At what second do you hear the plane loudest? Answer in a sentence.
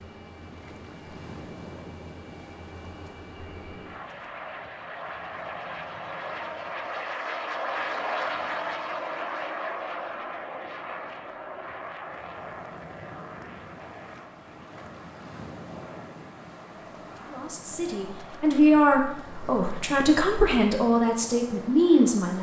The volume of the plane peaks at 8 seconds.